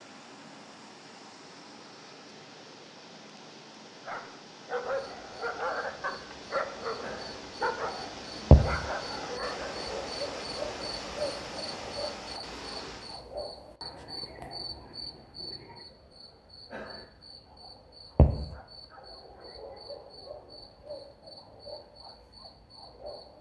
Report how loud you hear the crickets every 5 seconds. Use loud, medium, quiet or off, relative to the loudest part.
off, loud, medium, medium, quiet.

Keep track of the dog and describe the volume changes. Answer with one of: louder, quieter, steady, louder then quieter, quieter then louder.
steady.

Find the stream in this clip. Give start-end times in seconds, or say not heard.
0.0-13.2.